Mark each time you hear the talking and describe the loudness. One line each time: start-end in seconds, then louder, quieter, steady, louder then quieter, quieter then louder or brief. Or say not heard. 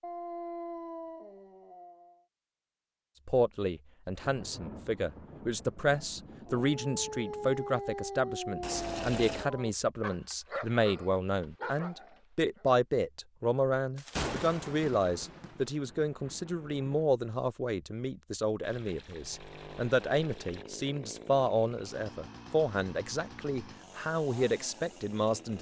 3.2-25.5 steady.